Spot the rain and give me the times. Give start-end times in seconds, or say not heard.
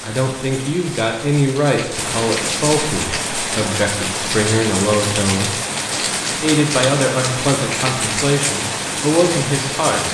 0.0-10.0.